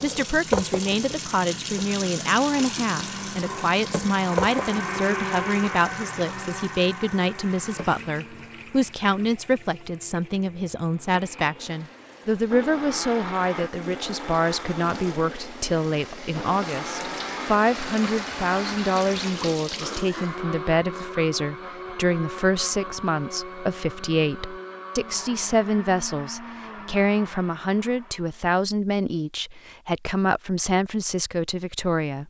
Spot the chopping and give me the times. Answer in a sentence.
You can't hear the chopping here.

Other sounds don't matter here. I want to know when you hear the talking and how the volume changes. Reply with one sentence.
The talking can be heard from 0.0 to 32.2 s, at a steady volume.